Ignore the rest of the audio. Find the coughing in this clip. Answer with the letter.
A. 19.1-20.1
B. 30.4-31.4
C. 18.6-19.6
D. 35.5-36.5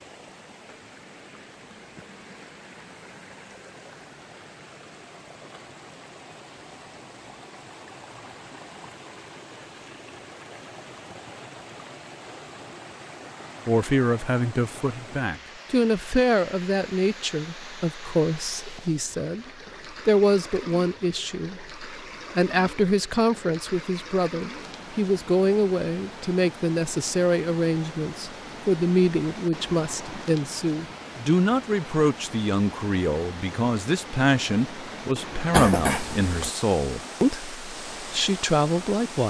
D.